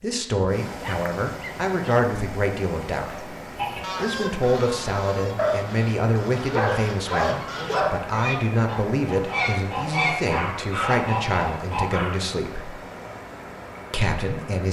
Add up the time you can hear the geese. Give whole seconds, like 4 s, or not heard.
8 s.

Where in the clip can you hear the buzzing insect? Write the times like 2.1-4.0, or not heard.
not heard.